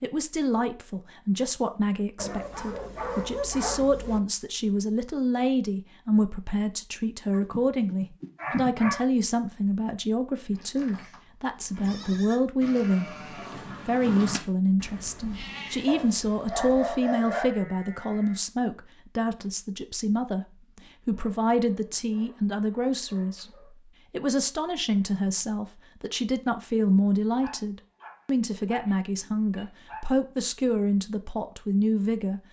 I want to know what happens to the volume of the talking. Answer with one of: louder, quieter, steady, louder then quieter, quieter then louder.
steady.